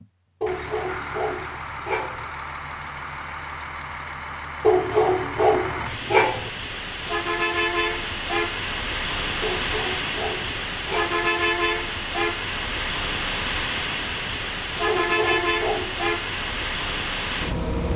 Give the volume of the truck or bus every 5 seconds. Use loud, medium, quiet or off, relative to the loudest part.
medium, loud, loud, loud.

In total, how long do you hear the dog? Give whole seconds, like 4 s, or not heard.
7 s.